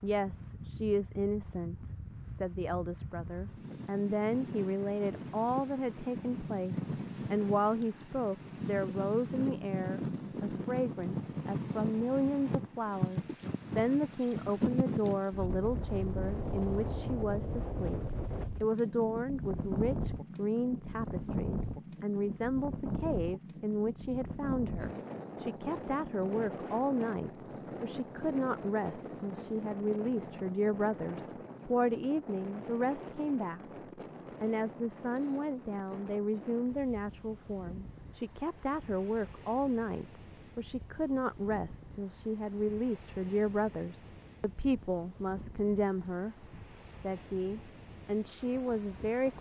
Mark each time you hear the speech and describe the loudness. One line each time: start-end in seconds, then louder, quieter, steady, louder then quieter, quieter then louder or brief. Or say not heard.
0.0-33.6 steady
34.4-49.3 steady.